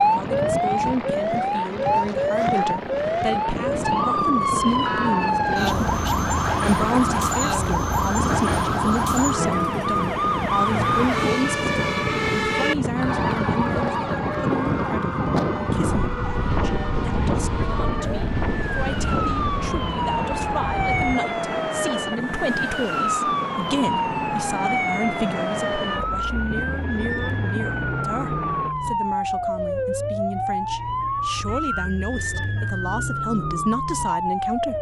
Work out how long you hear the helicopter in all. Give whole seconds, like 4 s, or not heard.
29 s.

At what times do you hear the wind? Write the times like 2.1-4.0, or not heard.
0.0-21.2.